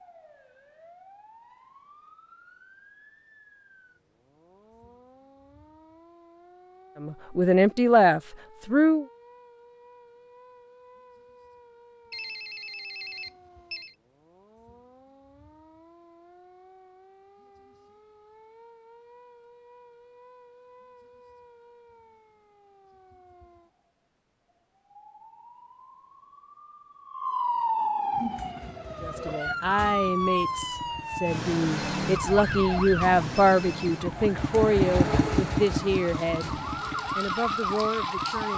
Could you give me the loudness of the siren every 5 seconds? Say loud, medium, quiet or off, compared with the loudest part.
quiet, quiet, quiet, quiet, quiet, loud, loud, loud.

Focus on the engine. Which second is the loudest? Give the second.
35 s.